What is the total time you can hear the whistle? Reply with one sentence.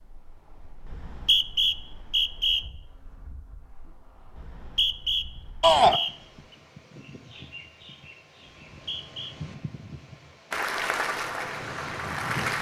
The whistle can be heard for 4 seconds in total.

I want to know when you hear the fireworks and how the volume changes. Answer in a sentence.
You can't hear the fireworks here.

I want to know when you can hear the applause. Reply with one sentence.
You can hear the applause from 10.5 to 12.5 s.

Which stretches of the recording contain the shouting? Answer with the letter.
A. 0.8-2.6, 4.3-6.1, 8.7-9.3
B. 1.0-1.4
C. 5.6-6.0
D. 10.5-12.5
C.